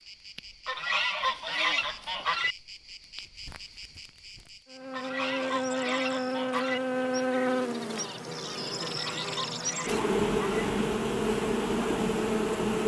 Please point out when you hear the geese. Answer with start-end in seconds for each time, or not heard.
0.7-2.5, 4.9-6.8, 8.8-10.7.